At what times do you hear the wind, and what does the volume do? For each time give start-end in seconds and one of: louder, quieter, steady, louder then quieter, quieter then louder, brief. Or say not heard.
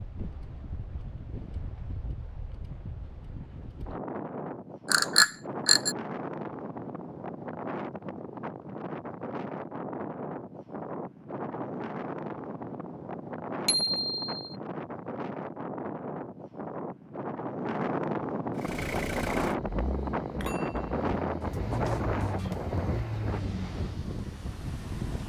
0.0-25.2 louder.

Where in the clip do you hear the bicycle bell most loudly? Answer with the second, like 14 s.
5 s.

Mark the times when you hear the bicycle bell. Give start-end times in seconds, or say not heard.
4.9-6.0, 13.7-14.4, 20.3-20.9.